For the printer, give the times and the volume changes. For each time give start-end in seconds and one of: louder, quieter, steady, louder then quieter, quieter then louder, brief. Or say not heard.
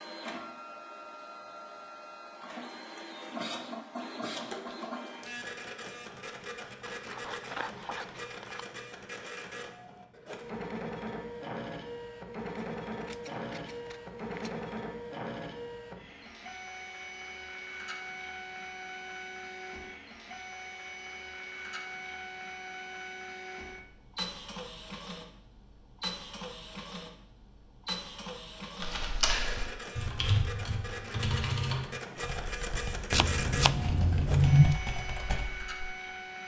0.0-36.4 steady.